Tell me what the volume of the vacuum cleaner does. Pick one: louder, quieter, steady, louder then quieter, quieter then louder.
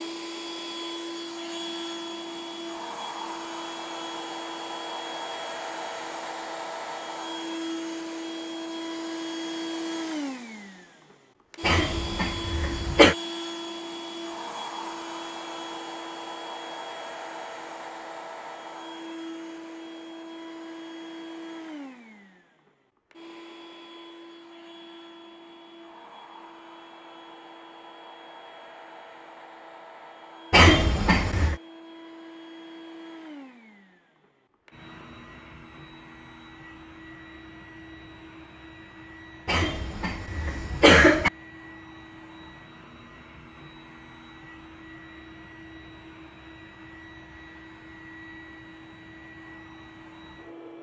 quieter.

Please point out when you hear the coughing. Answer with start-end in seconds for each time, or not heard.
11.6-13.2, 30.5-31.6, 39.5-41.3.